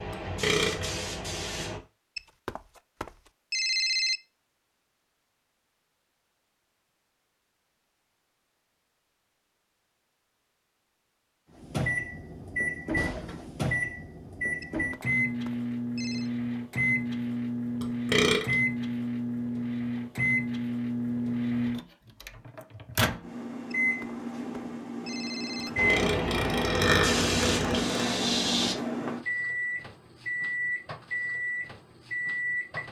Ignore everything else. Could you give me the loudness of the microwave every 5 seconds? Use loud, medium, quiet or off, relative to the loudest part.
off, off, loud, loud, loud, loud, loud.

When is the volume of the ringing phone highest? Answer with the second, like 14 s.
4 s.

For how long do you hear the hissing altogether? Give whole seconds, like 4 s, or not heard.
5 s.